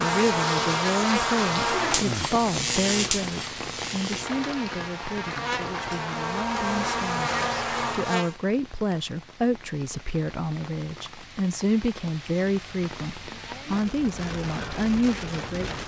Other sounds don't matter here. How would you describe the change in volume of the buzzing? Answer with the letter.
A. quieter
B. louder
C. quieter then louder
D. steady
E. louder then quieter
C.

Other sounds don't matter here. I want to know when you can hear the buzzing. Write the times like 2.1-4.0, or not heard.
0.0-8.3.